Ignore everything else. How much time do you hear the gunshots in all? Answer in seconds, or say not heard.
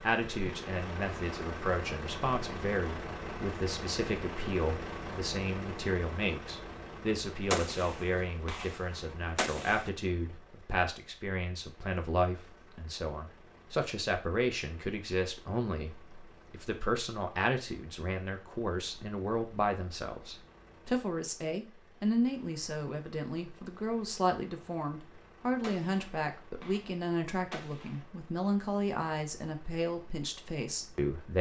5 s.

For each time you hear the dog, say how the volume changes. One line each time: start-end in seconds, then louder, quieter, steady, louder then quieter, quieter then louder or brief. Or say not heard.
not heard.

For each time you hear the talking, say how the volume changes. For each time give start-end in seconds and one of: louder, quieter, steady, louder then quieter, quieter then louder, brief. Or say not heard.
0.0-31.3 steady.